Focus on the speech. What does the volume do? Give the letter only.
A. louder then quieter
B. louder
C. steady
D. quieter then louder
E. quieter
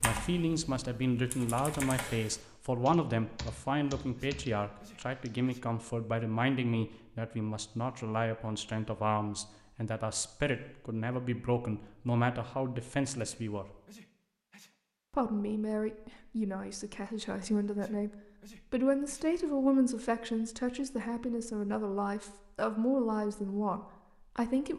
C.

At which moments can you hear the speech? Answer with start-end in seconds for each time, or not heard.
0.0-13.8, 15.1-18.1, 18.7-24.7.